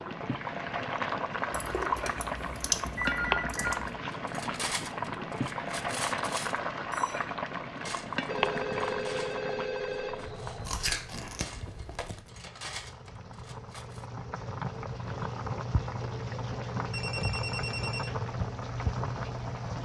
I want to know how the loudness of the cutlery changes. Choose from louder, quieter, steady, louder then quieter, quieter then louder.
quieter then louder.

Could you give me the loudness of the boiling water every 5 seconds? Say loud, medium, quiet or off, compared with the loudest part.
loud, loud, medium, loud.